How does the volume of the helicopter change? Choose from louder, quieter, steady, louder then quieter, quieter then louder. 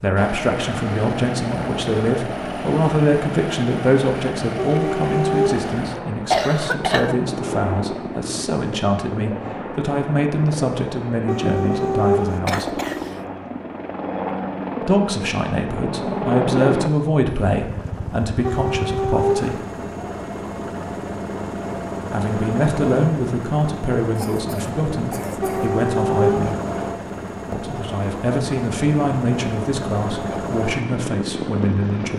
steady.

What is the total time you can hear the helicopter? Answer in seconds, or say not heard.
32 s.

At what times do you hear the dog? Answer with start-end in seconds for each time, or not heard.
4.5-5.7, 11.2-12.4, 18.4-19.6, 25.4-26.6.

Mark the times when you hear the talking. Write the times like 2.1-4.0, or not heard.
0.0-12.8, 14.8-19.6, 22.1-26.6, 27.5-32.1.